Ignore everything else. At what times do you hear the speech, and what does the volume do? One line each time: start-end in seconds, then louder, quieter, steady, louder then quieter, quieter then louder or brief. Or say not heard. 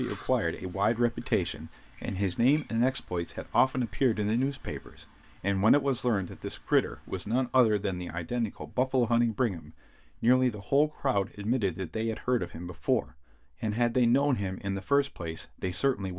0.0-16.1 steady.